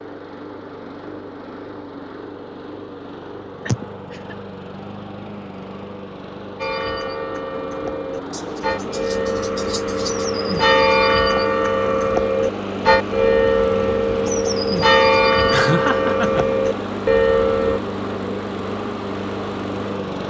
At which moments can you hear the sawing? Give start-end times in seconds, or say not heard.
not heard.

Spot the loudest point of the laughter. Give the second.
16 s.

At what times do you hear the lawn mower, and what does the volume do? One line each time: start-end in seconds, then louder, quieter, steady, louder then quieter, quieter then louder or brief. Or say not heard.
0.0-20.2 louder.